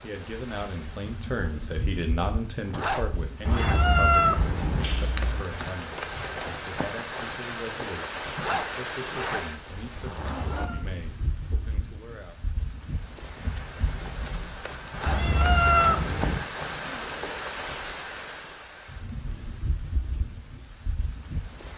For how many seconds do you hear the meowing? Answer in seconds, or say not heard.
4 s.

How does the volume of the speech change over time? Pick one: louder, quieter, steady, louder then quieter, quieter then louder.
quieter.